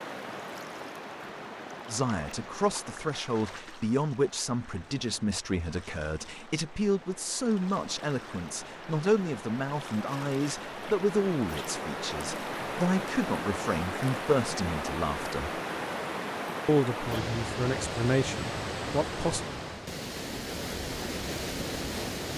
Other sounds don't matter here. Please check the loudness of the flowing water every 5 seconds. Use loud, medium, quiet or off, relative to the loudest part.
medium, medium, loud, loud, loud.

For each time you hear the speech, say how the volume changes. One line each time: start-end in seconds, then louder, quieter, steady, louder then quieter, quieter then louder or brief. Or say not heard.
1.9-15.6 steady
16.6-19.4 brief.